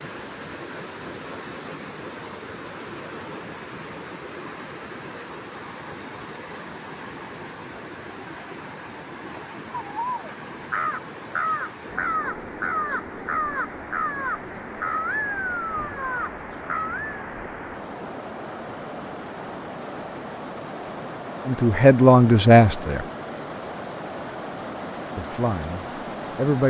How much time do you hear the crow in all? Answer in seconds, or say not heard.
7 s.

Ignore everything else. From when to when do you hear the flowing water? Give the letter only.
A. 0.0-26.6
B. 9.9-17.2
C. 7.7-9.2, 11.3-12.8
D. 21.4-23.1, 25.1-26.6
A.